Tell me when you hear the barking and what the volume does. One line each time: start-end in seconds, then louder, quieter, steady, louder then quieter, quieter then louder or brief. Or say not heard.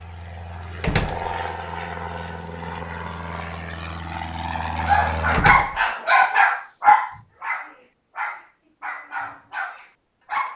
4.8-10.5 quieter.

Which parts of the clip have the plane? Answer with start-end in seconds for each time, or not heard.
0.0-5.5.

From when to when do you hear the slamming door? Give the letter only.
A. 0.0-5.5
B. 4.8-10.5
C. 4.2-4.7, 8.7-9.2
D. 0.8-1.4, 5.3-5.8
D.